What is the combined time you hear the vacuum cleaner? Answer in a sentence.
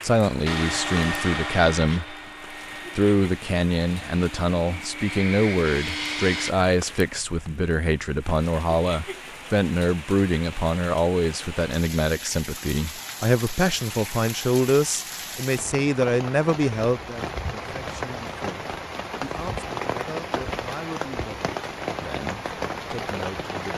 The vacuum cleaner can be heard for 6 seconds in total.